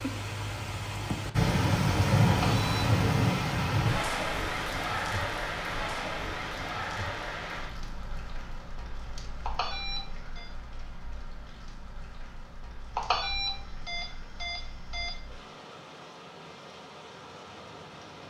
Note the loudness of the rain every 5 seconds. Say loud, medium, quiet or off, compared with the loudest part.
loud, medium, quiet, quiet.